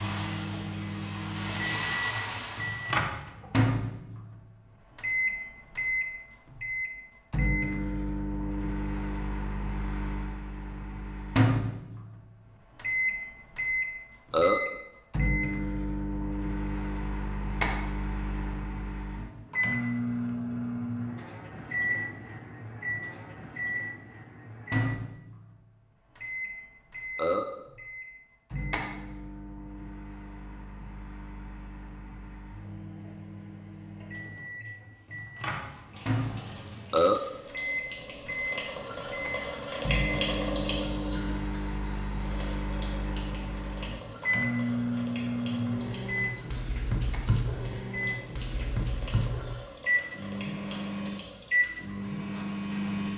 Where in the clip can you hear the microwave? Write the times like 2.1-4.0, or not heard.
0.0-53.1.